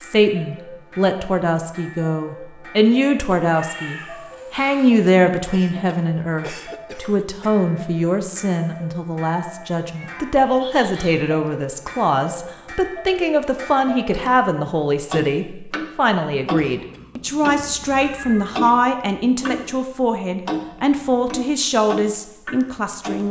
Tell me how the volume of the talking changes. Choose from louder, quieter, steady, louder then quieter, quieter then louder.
steady.